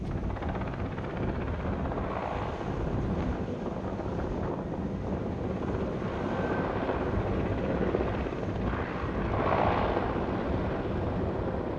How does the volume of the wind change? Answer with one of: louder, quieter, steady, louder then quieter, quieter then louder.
steady.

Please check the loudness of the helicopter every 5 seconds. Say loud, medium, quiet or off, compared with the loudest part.
medium, loud, loud.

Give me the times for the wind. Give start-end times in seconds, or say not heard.
0.0-11.7.